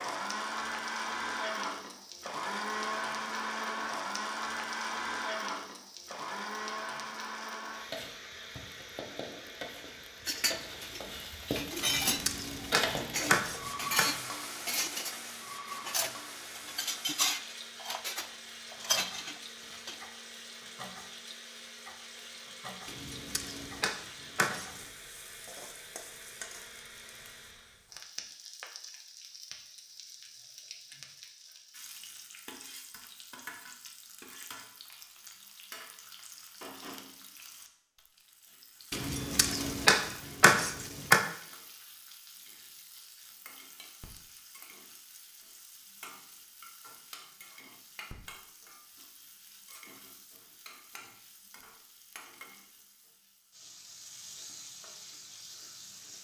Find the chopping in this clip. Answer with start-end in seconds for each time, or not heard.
11.8-14.1, 22.9-24.9, 38.9-41.2.